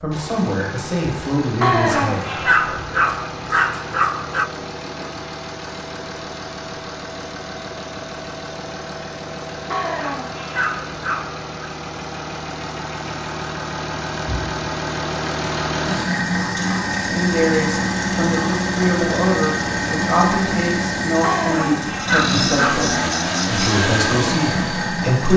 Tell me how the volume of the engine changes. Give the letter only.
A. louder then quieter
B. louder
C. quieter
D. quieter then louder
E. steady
B.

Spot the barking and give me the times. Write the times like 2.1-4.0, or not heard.
1.6-4.5, 9.7-11.7, 21.2-22.9.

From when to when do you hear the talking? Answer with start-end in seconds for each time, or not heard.
0.0-2.4, 17.0-25.3.